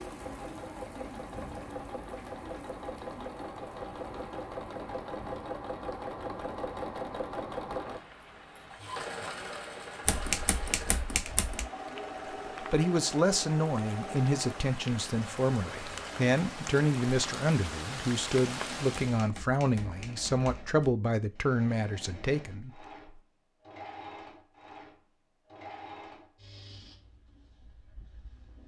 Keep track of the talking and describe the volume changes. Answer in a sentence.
The volume of the talking stays about the same.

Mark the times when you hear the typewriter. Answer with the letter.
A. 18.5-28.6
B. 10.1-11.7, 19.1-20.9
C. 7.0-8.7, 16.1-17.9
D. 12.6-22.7
B.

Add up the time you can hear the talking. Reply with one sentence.
The talking can be heard for 10 seconds in total.